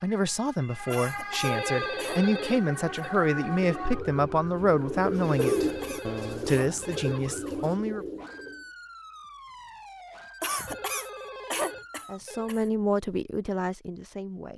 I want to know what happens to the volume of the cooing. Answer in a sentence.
The loudness of the cooing goes up, then down.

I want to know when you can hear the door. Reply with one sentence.
You can't hear the door here.